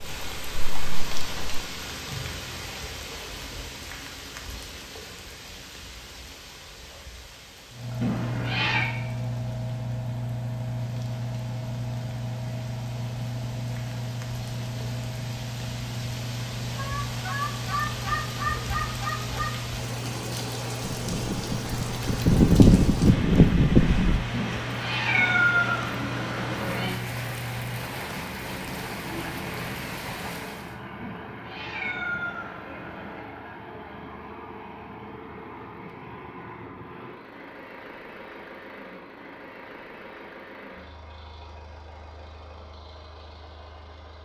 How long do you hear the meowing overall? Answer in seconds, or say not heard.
6 s.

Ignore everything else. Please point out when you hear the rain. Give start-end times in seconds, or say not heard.
0.0-30.8.